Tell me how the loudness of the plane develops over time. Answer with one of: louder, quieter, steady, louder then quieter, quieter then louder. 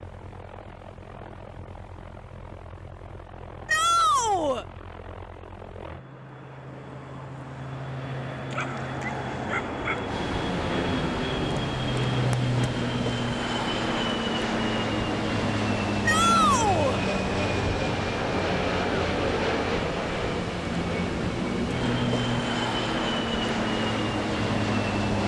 louder.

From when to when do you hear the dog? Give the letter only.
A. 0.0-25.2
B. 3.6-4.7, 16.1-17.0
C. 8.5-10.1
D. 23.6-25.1
C.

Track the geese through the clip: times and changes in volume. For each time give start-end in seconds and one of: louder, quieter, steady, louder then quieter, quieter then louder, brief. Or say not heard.
not heard.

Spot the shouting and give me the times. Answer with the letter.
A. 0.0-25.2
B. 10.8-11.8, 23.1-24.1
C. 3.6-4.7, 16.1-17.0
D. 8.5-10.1
C.